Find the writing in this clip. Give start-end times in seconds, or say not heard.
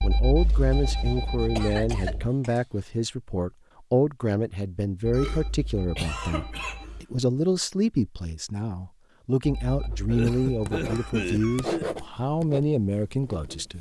9.8-13.7.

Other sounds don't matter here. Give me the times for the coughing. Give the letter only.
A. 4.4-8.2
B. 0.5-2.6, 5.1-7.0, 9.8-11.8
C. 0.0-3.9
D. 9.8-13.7
B.